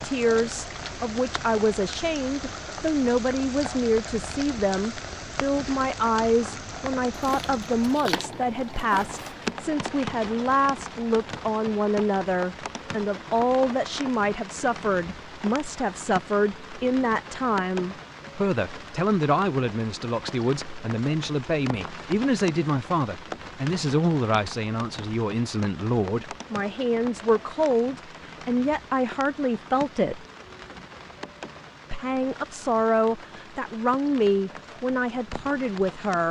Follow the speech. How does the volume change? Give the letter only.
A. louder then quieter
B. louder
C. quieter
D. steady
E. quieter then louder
D.